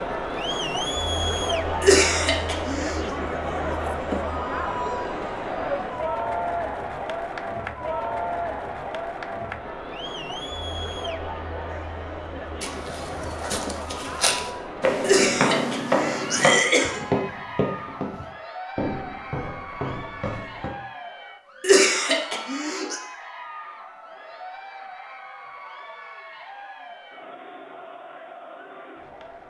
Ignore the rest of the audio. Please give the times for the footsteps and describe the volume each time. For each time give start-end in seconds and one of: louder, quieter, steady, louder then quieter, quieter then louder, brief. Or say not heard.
12.6-20.8 louder then quieter.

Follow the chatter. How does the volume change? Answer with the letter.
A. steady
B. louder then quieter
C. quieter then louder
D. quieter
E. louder
D.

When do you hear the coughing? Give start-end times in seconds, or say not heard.
1.8-3.0, 15.0-17.0, 21.6-23.0.